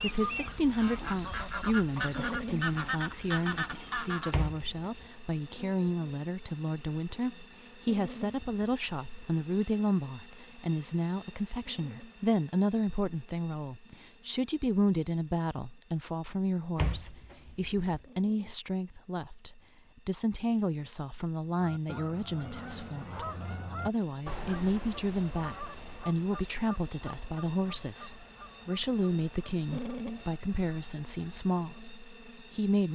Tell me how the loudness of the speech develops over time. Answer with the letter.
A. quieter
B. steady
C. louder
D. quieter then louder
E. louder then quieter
B.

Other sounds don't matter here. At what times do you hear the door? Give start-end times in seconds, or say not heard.
4.3-5.0, 16.8-18.0.